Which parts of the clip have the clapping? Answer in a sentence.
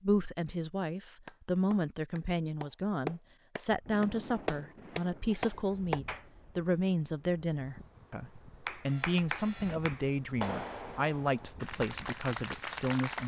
The clapping can be heard from 1.2 to 6.2 s and from 8.7 to 13.2 s.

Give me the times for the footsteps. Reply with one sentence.
You can't hear the footsteps here.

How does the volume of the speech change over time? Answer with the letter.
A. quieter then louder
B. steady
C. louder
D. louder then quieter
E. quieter
B.